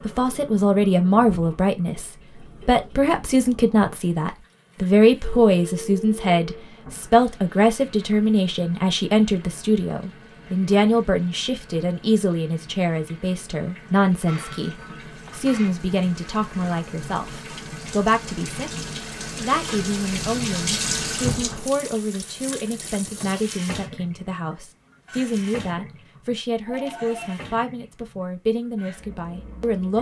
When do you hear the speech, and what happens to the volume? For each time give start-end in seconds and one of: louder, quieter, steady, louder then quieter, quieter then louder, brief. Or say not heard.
0.1-29.9 quieter.